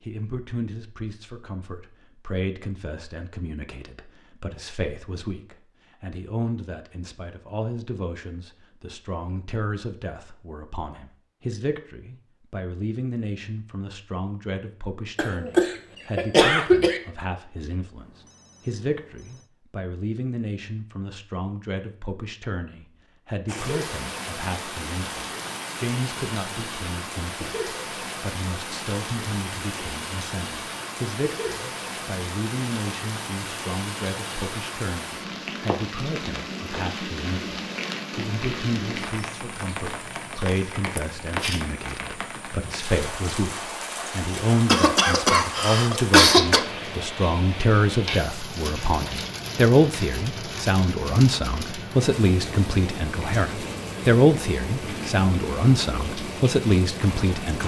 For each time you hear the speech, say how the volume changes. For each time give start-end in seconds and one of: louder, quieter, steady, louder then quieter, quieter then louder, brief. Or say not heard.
0.0-57.6 louder.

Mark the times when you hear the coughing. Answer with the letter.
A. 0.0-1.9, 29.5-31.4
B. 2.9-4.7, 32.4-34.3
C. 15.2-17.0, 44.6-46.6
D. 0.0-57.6
C.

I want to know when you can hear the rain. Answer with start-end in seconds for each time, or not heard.
23.4-57.6.